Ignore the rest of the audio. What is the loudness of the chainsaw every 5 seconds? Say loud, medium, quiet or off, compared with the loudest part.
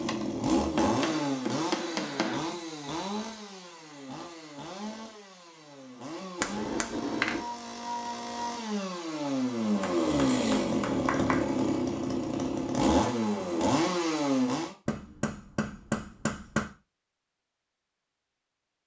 medium, medium, loud, off.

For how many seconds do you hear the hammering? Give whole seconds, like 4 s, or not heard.
6 s.